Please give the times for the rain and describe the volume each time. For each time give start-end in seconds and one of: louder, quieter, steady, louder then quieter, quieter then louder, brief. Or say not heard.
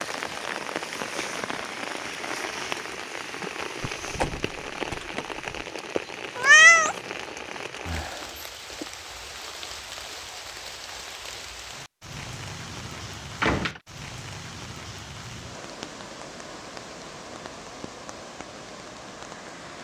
0.0-19.7 quieter.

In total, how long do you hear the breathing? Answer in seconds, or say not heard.
not heard.